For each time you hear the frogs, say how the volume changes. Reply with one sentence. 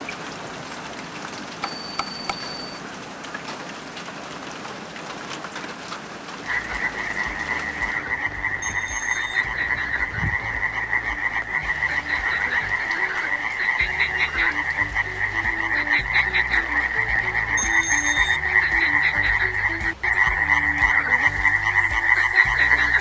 You can hear the frogs from 6.4 to 22.9 s, getting louder.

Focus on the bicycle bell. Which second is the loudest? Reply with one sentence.
The loudest moment of the bicycle bell is at 18 seconds.